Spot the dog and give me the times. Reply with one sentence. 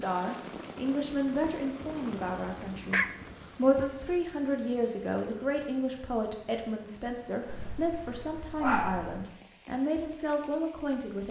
You can hear the dog from 1.8 to 3.1 s and from 7.5 to 9.2 s.